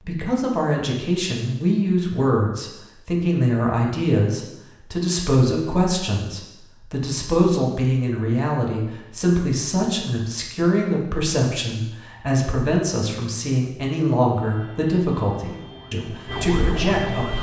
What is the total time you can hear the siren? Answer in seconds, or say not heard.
3 s.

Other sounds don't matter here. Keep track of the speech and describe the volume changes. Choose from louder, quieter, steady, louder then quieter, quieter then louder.
steady.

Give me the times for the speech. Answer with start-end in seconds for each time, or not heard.
0.1-17.3.